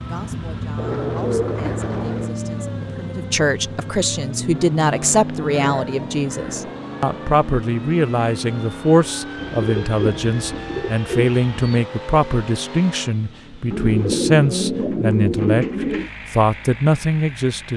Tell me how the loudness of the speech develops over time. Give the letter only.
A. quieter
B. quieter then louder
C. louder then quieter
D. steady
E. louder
E.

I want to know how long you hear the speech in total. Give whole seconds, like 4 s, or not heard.
18 s.